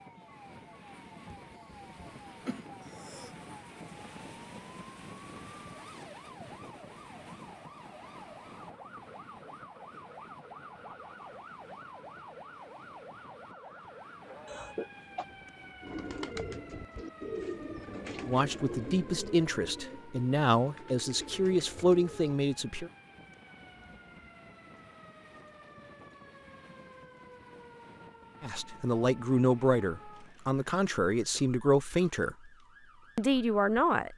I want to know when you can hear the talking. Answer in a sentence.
The talking can be heard from 18.2 to 22.9 s, from 28.4 to 32.4 s and from 33.1 to 34.1 s.